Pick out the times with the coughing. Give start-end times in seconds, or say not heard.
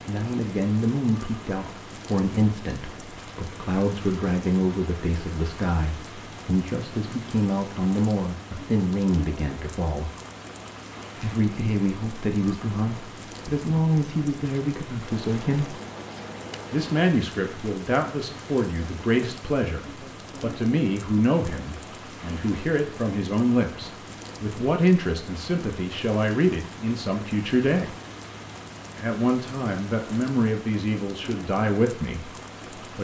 not heard.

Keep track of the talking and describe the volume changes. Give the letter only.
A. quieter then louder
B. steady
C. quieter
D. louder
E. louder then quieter
B.